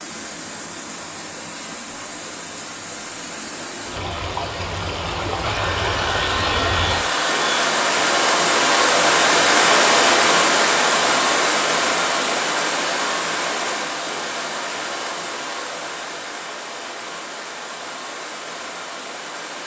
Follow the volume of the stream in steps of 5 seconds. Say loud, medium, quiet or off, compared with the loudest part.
quiet, loud, loud, quiet.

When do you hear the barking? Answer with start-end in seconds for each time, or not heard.
not heard.